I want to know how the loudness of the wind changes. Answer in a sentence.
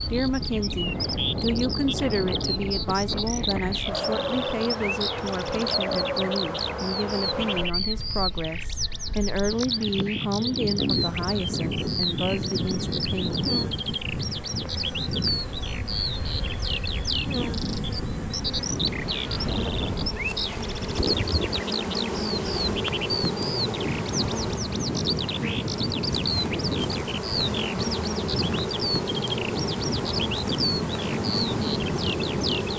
The loudness of the wind stays about the same.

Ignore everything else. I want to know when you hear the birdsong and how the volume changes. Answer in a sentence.
You can hear the birdsong from 0.0 to 32.7 s, at a steady volume.